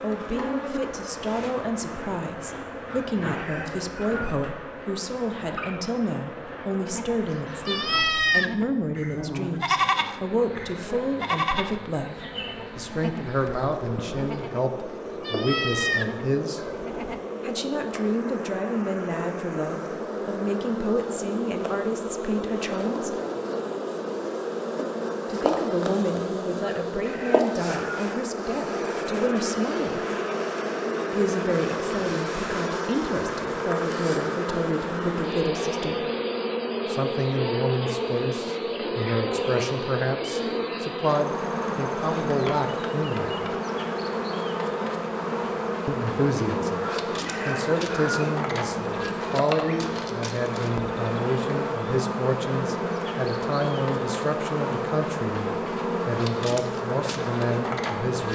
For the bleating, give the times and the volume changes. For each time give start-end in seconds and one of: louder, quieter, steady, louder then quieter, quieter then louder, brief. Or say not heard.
6.8-17.2 quieter then louder.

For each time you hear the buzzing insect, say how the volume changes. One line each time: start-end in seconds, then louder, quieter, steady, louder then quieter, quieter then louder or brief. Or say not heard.
0.0-58.3 louder.